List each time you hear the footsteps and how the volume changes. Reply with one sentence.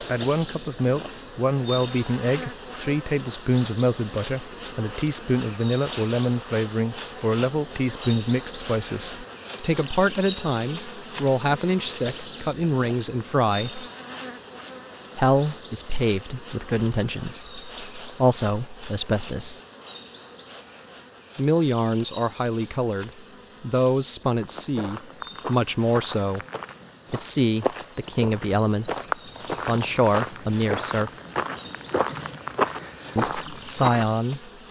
You can hear the footsteps from 24.4 to 34.4 s, getting louder.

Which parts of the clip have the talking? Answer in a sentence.
You can hear the talking from 0.0 to 13.8 s, from 15.2 to 19.6 s, from 21.4 to 26.4 s, from 27.1 to 29.1 s, from 29.6 to 31.1 s and from 33.1 to 34.5 s.